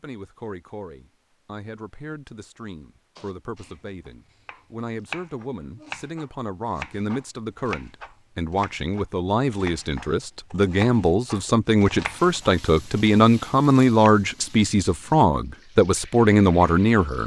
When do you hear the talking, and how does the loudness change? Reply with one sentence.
You can hear the talking from 0.0 to 17.2 s, getting louder.